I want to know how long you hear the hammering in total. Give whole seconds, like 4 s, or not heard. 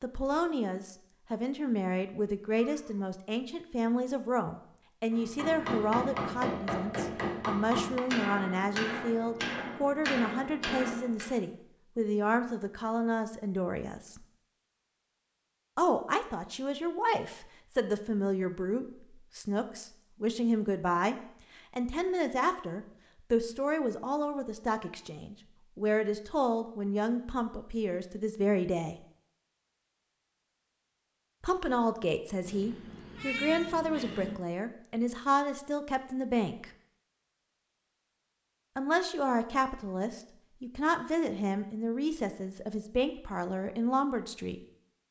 6 s.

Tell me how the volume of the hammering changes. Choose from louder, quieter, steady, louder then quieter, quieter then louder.
steady.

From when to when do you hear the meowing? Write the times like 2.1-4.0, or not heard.
2.5-3.1, 32.5-34.4.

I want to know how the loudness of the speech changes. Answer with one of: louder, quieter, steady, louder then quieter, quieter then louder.
steady.